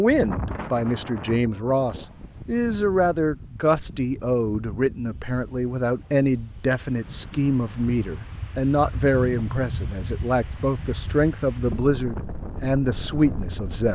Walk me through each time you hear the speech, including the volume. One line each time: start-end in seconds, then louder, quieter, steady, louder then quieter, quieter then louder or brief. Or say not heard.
0.0-13.9 steady.